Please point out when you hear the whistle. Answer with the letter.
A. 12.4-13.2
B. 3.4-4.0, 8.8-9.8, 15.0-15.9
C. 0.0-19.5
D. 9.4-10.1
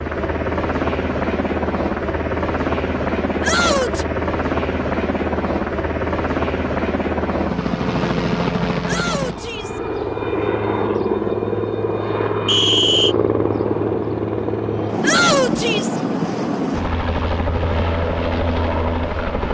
A.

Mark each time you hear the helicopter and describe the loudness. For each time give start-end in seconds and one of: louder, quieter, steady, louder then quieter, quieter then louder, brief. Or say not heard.
0.0-19.5 steady.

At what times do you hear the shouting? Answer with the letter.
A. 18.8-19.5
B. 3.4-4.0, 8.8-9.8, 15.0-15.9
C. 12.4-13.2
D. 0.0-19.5
B.